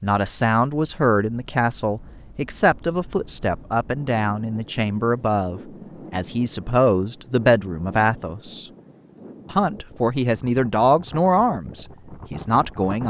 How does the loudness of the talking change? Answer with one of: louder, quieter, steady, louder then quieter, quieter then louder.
steady.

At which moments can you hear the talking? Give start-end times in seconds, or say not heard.
0.0-8.7, 9.5-13.0.